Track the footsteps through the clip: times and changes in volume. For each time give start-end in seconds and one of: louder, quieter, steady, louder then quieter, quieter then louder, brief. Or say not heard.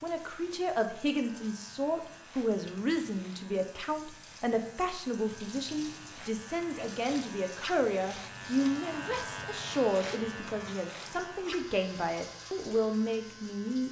not heard.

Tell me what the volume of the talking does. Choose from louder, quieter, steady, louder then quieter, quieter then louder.
steady.